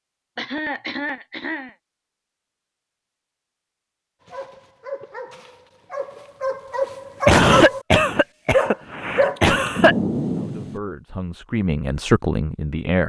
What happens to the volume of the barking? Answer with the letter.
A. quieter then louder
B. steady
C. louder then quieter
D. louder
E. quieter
D.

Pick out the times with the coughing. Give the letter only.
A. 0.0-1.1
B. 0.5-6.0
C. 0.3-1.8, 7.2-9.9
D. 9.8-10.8
C.